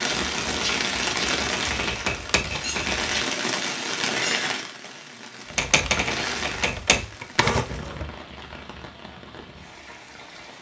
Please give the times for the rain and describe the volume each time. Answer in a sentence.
The rain can be heard from 0.0 to 10.5 s, getting quieter.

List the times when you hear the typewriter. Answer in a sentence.
The typewriter can be heard from 0.1 to 3.4 s and from 5.5 to 8.1 s.